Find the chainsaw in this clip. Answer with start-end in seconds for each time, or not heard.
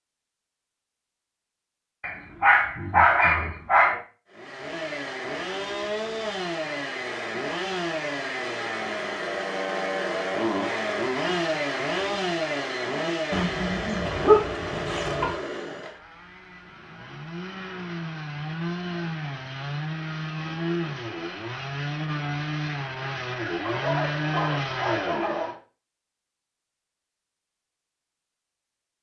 4.3-25.6.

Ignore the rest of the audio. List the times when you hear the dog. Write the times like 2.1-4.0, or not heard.
2.0-4.0, 13.3-15.3, 23.6-25.6.